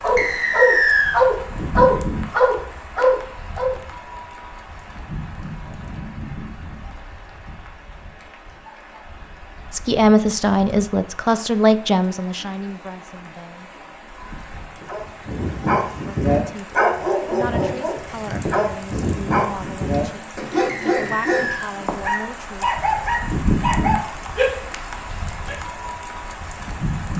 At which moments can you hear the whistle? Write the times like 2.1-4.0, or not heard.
0.1-1.2, 20.6-21.7.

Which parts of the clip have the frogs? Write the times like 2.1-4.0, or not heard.
not heard.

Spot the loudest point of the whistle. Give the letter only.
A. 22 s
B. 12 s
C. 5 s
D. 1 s
D.